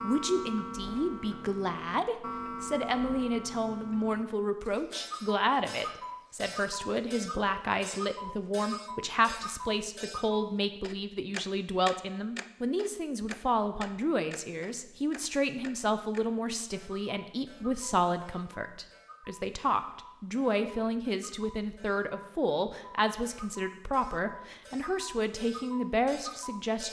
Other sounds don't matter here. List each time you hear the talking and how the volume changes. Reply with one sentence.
The talking can be heard from 0.0 to 26.8 s, at a steady volume.